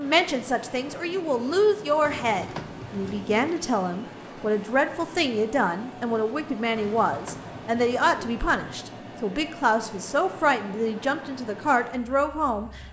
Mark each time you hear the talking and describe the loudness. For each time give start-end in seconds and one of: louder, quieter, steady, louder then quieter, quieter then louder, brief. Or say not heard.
0.0-12.8 steady.